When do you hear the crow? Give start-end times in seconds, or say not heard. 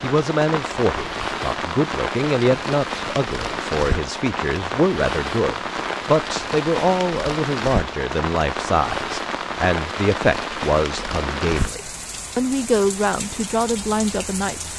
not heard.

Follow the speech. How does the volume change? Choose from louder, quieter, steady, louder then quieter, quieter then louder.
steady.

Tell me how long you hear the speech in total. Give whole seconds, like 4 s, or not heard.
15 s.